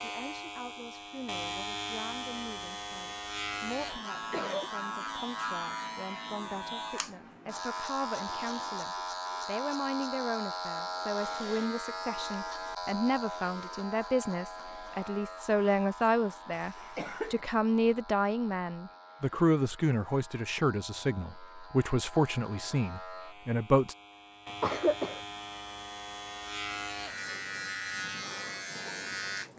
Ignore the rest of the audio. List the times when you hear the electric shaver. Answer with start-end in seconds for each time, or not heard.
0.0-29.5.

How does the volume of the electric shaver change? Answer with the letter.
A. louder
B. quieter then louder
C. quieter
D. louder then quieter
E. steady
B.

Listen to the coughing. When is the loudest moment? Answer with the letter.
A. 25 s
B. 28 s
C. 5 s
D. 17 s
A.